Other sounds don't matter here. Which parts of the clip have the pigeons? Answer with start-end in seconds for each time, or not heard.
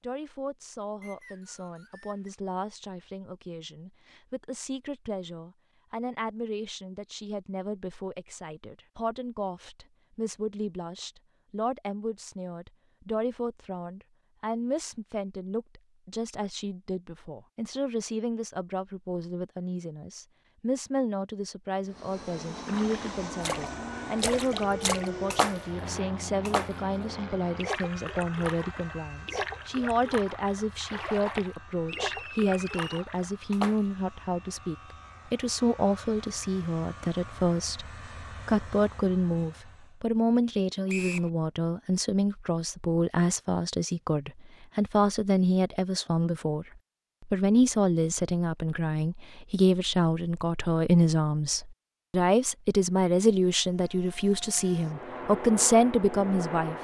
not heard.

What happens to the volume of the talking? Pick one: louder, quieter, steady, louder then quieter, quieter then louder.
louder.